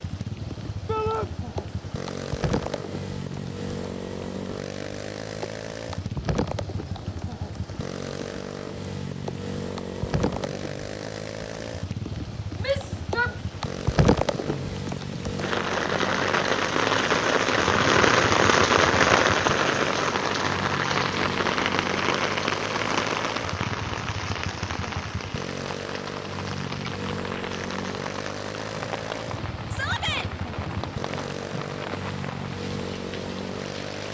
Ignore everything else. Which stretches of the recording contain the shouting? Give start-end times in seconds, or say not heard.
0.8-1.3, 12.6-13.3, 29.7-30.3.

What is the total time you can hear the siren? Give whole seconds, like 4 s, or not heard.
not heard.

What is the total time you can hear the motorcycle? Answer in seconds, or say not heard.
34 s.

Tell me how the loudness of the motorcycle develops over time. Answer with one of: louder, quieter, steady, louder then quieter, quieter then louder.
steady.